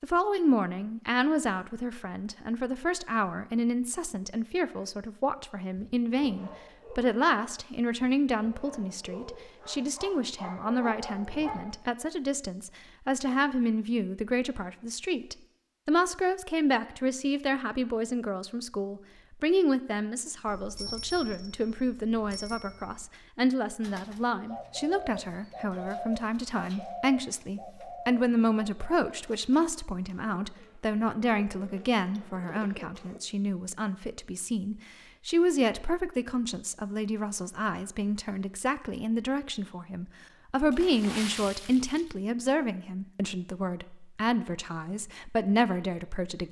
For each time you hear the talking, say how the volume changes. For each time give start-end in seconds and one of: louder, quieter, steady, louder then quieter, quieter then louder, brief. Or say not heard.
0.0-46.4 steady.